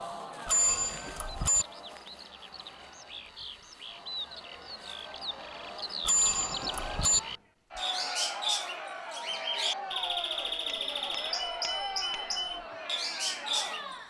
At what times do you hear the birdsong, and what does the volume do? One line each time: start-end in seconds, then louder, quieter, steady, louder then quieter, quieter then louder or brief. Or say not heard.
0.0-13.9 louder.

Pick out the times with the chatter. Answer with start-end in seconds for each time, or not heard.
0.0-14.0.